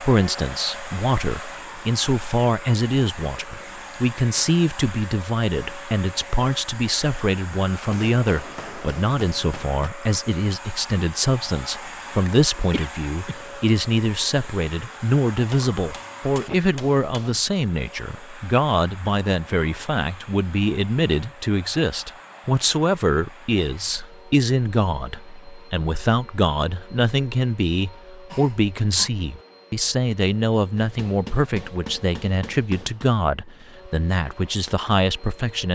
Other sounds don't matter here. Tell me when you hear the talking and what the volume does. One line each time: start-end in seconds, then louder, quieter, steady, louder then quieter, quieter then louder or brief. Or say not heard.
0.0-35.6 steady.